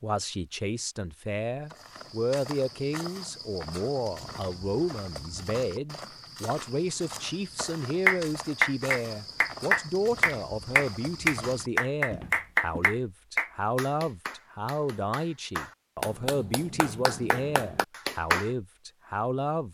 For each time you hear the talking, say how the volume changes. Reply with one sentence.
The talking can be heard from 0.0 to 19.6 s, at a steady volume.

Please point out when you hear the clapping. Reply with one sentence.
The clapping can be heard from 8.1 to 18.5 s.